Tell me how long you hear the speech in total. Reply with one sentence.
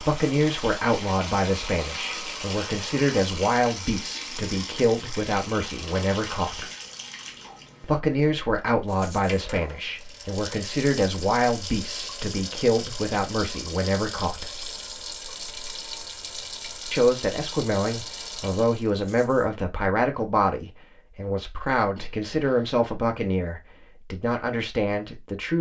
You can hear the speech for 22 seconds altogether.